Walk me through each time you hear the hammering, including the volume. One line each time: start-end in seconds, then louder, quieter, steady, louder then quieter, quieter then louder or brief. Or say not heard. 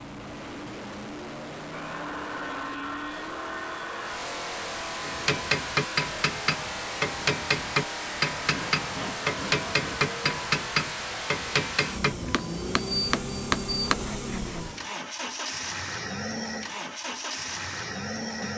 5.0-13.9 steady.